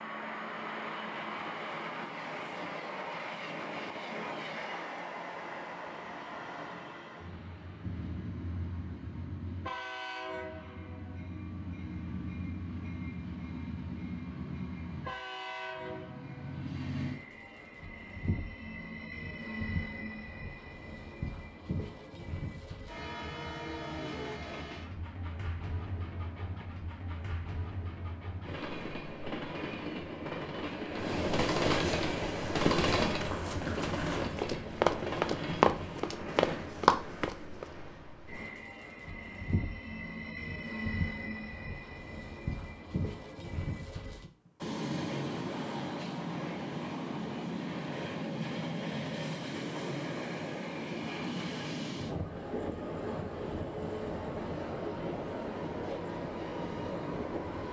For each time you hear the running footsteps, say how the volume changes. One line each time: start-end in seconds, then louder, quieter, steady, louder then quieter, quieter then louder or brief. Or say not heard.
32.5-37.6 louder.